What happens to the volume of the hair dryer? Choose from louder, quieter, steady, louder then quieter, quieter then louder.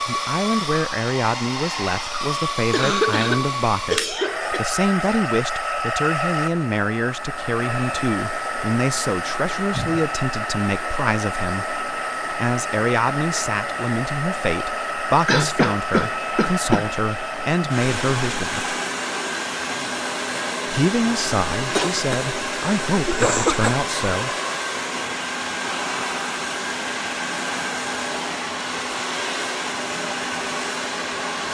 steady.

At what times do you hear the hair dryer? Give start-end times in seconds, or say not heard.
0.0-31.4.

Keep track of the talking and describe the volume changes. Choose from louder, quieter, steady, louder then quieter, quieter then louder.
steady.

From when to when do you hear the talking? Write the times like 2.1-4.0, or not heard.
0.0-18.7, 20.6-24.3.